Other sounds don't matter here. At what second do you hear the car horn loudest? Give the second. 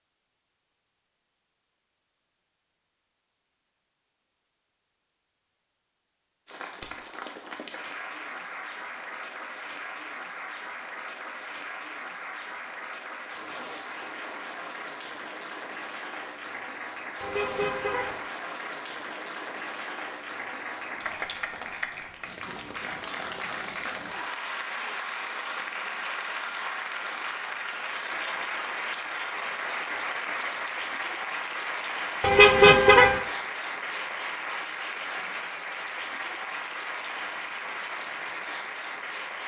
33 s.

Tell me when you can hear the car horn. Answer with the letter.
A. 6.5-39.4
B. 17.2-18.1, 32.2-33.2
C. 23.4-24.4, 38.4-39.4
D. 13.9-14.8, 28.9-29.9
B.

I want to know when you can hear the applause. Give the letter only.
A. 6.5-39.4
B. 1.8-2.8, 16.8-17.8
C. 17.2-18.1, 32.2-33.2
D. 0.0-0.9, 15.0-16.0
A.